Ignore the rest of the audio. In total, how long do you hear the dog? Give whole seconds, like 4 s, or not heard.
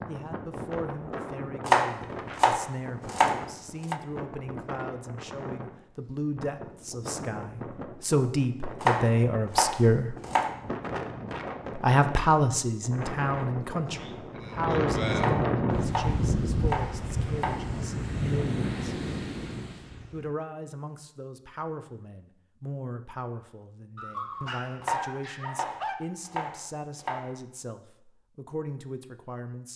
2 s.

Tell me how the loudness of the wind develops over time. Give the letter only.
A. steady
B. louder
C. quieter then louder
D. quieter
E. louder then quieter
B.